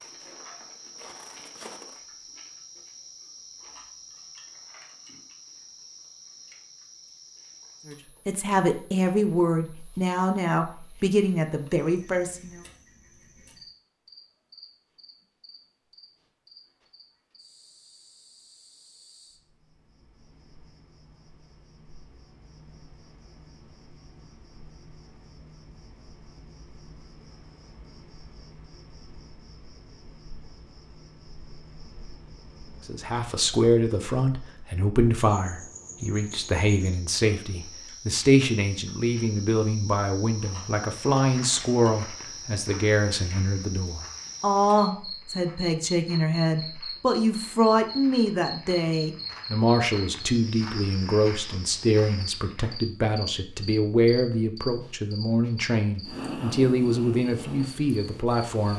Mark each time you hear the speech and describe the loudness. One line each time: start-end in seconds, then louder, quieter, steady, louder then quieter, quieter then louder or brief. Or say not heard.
7.8-12.6 steady
32.9-58.7 steady.